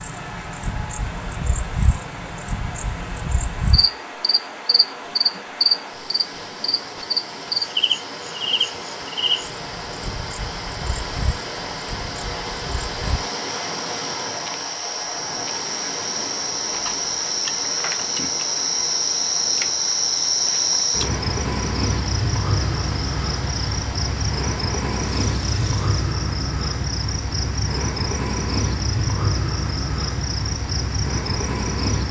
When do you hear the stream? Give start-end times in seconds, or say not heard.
0.0-26.1.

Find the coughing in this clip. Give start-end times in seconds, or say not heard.
not heard.